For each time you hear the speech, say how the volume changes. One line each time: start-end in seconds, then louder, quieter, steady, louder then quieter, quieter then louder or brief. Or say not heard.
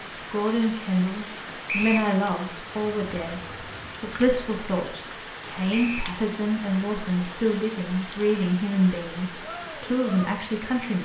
0.3-11.0 steady.